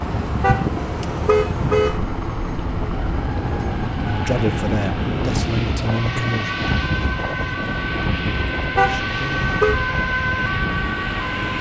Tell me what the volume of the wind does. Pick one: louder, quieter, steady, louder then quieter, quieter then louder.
quieter.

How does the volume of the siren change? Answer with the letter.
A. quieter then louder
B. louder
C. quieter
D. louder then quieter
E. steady
B.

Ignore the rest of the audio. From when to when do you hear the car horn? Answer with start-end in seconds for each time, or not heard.
0.4-1.9, 8.8-9.8.